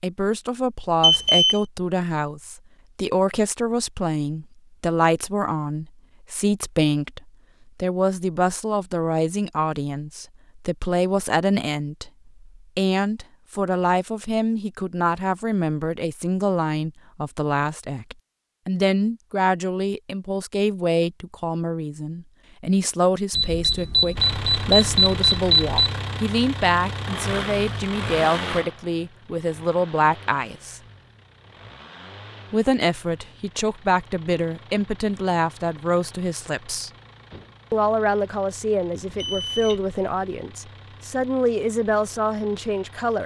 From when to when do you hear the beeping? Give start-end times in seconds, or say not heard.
1.0-1.6, 23.3-25.9, 39.0-39.9.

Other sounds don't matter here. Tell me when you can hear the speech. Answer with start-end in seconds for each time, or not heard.
0.0-30.8, 32.5-36.9, 37.7-43.2.